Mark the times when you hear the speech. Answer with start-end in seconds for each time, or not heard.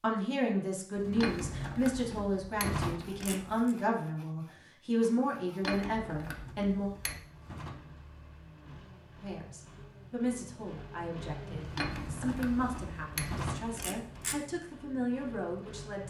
0.0-6.9, 9.2-16.0.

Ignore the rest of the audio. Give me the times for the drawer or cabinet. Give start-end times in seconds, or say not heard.
0.9-3.1, 6.0-8.0, 11.6-13.8.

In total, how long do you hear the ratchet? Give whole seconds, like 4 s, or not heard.
7 s.